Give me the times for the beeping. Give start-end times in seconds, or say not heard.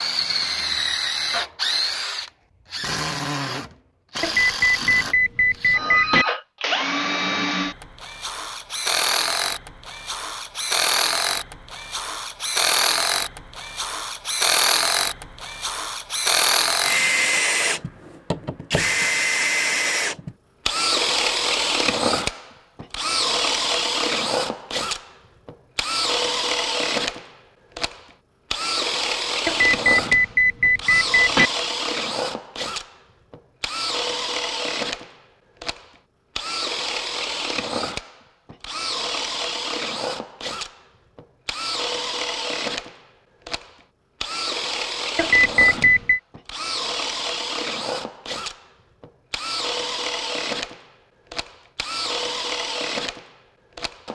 4.2-6.2, 29.4-31.5, 45.1-46.2.